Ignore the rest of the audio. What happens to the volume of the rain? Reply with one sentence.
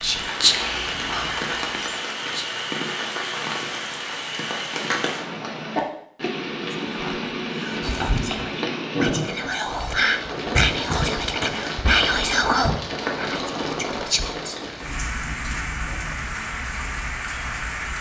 The loudness of the rain stays about the same.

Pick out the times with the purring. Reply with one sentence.
You can't hear the purring here.